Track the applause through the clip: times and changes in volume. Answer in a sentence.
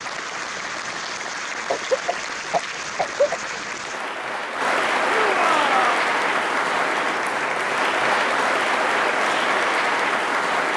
The applause can be heard from 0.0 to 10.7 s, getting louder.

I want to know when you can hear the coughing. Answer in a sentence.
The coughing can be heard from 1.7 to 3.4 s.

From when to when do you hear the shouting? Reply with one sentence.
You can hear the shouting from 5.2 to 6.0 s.